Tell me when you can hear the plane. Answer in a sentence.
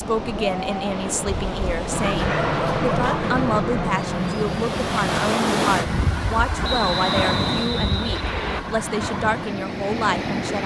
The plane can be heard from 1.9 to 5.4 s.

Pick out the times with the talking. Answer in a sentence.
The talking can be heard from 0.0 to 10.6 s.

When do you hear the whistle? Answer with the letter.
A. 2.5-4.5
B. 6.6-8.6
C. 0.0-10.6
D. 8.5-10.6
B.